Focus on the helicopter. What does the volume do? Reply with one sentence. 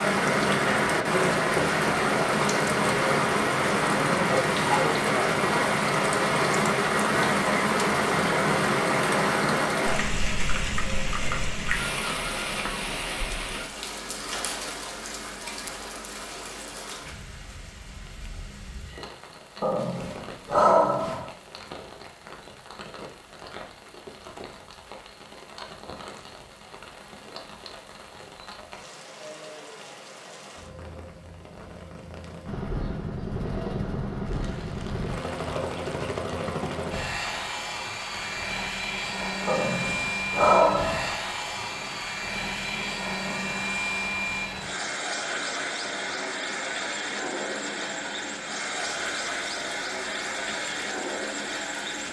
The loudness of the helicopter stays about the same.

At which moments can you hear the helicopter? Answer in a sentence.
You can hear the helicopter from 32.5 to 52.0 s.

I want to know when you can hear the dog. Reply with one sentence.
You can hear the dog from 19.6 to 21.3 s and from 39.5 to 41.1 s.